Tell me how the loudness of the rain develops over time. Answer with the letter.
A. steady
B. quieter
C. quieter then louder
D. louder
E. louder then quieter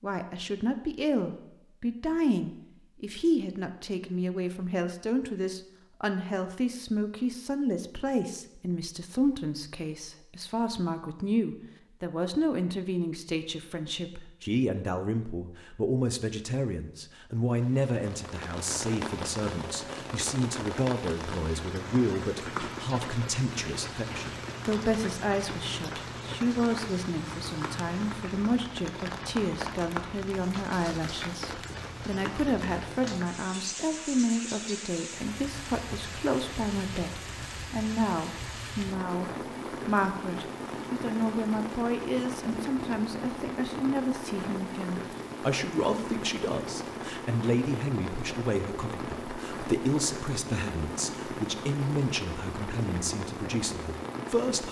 A.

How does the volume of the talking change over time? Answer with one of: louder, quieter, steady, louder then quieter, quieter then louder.
steady.